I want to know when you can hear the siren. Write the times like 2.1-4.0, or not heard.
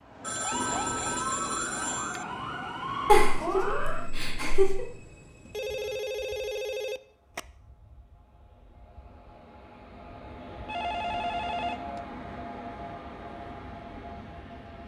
0.0-4.1.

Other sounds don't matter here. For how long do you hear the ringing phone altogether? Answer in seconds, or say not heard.
5 s.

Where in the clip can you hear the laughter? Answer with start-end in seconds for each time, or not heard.
3.0-4.8.